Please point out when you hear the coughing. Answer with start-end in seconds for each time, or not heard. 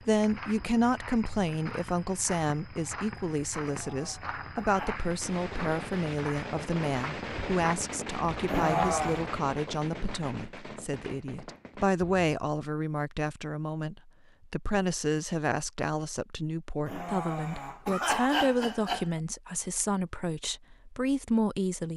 3.6-5.0, 8.4-9.2, 16.9-19.1.